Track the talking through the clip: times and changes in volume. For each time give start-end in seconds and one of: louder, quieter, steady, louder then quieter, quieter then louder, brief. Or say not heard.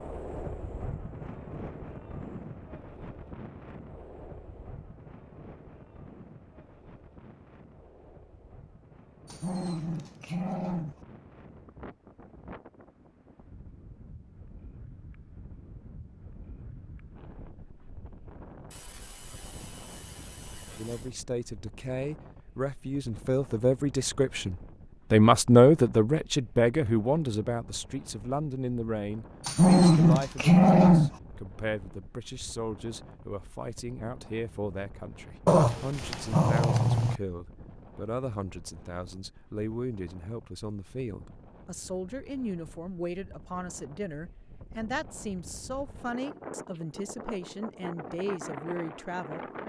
20.8-49.5 quieter.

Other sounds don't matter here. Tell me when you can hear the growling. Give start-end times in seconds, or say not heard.
9.2-10.9, 29.4-31.1, 35.5-37.2.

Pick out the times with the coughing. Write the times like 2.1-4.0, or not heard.
18.7-21.1.